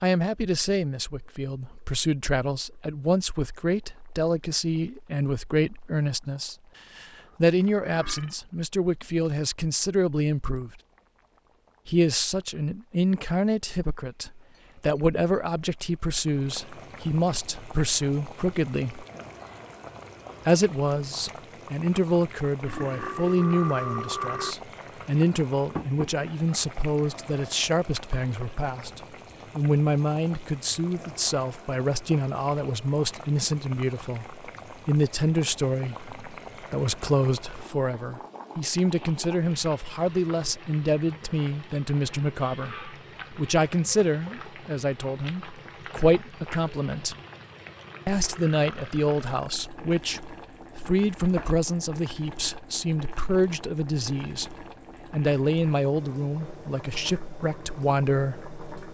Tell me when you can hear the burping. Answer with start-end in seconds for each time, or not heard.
7.2-8.3, 22.6-24.6, 48.2-49.7.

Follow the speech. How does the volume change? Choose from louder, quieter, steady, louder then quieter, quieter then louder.
steady.